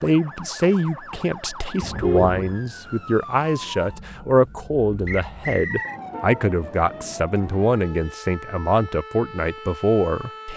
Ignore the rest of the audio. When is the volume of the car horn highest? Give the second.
2 s.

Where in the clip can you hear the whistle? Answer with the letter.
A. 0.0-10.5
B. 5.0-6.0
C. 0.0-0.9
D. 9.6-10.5
B.